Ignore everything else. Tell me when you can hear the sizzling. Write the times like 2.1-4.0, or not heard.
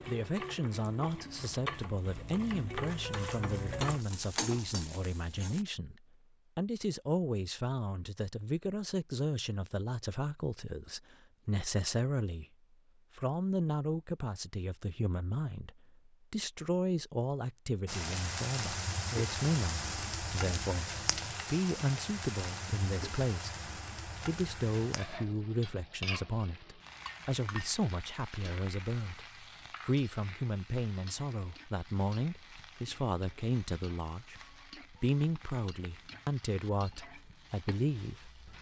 0.0-5.7, 17.9-38.5.